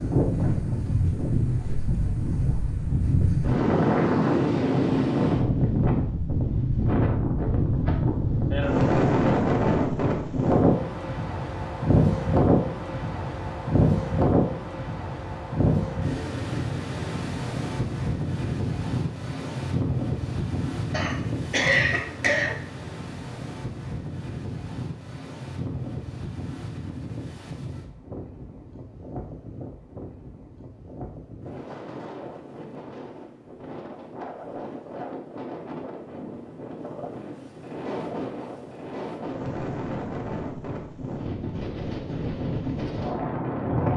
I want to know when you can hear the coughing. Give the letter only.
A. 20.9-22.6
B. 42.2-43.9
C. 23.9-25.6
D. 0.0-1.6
A.